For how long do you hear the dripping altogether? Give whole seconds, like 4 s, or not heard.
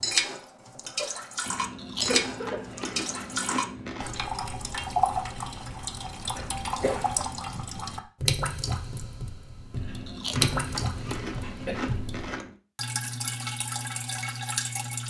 15 s.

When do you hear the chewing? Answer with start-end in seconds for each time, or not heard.
1.4-4.1, 9.7-12.6.